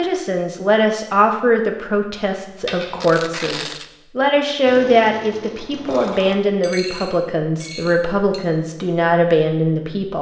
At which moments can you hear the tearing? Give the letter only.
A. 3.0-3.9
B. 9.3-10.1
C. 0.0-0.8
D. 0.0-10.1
A.